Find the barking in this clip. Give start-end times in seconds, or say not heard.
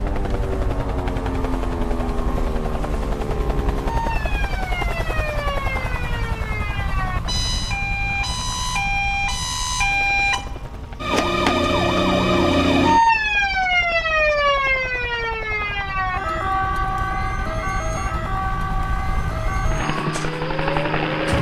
not heard.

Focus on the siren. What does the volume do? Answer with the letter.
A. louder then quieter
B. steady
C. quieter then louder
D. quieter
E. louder
A.